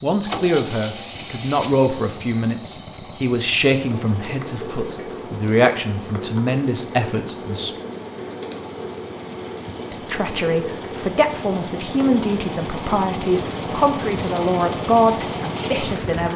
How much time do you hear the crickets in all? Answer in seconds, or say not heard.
16 s.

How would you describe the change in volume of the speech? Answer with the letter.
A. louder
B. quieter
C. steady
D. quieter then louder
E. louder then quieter
C.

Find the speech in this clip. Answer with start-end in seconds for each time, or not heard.
0.0-7.8, 9.9-16.3.